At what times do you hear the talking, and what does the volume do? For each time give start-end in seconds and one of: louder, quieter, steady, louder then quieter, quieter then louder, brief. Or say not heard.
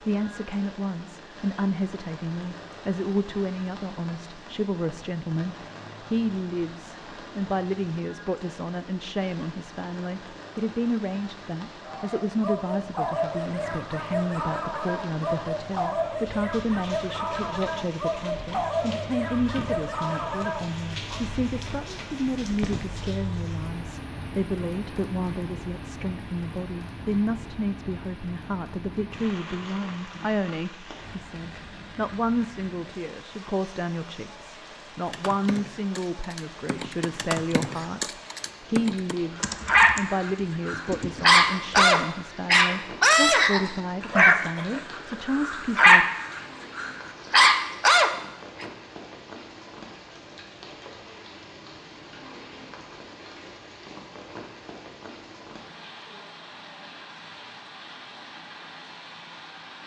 0.1-46.1 steady.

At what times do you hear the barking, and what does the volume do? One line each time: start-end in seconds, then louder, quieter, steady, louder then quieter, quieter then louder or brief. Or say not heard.
11.8-21.2 steady
39.4-48.6 steady.